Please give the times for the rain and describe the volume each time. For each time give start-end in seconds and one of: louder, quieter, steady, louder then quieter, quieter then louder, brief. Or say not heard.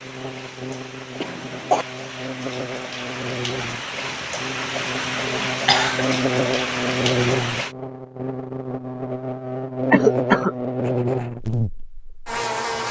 0.0-7.8 louder.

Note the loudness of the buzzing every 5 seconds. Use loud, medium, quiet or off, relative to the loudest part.
medium, loud, loud.